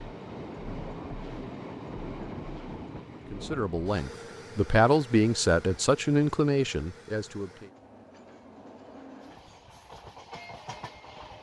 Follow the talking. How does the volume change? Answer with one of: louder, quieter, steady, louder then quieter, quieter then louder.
louder then quieter.